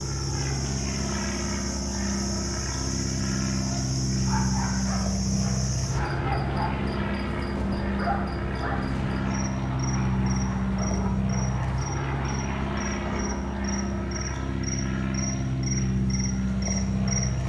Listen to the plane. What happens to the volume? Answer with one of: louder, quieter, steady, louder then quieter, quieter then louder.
steady.